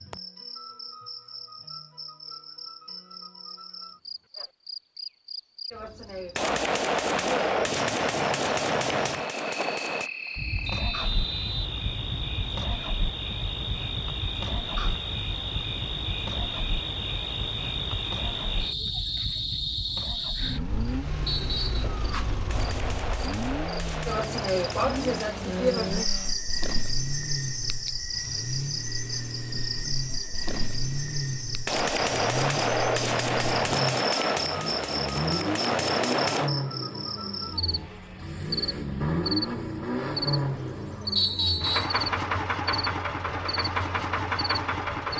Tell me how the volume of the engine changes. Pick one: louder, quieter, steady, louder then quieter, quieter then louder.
louder.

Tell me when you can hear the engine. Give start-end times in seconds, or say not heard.
10.3-45.1.